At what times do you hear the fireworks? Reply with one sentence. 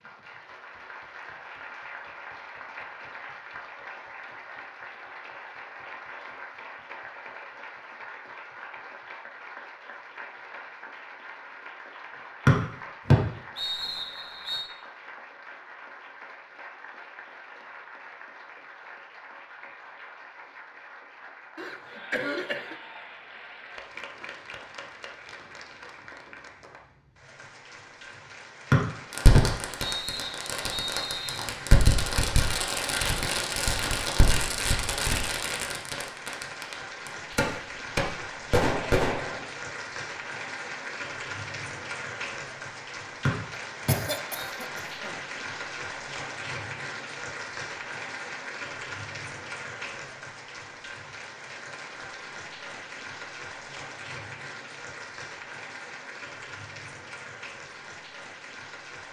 You can hear the fireworks from 29.1 to 39.5 s.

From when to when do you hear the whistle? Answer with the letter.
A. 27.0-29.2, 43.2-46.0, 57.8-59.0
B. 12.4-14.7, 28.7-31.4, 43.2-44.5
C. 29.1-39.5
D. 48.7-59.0
B.